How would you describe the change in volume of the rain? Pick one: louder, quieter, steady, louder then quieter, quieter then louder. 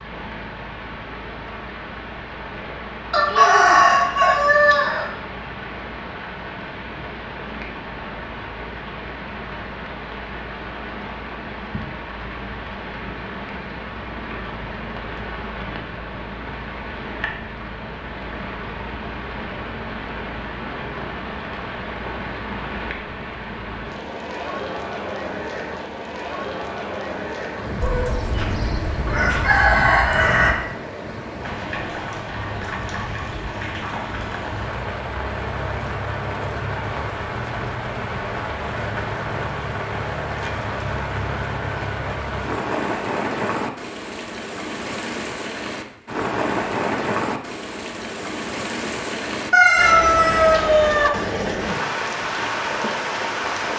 louder.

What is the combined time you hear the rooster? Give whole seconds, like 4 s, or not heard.
6 s.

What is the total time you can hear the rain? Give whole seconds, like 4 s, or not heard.
54 s.